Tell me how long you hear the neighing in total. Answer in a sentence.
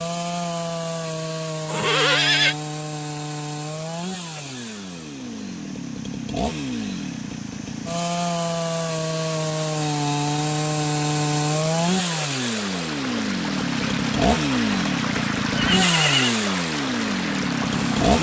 The neighing can be heard for 2 seconds in total.